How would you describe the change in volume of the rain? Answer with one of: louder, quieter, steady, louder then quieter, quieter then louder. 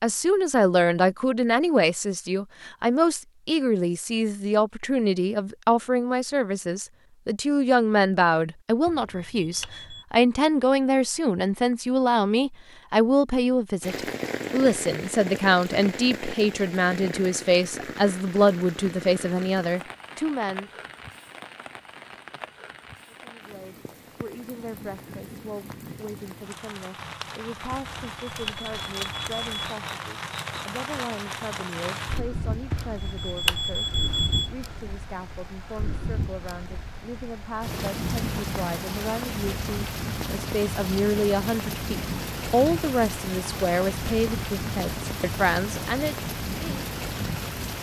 quieter then louder.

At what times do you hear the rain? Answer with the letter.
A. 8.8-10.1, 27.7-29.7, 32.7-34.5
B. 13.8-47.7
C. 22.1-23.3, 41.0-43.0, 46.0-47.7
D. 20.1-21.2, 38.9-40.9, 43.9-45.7
B.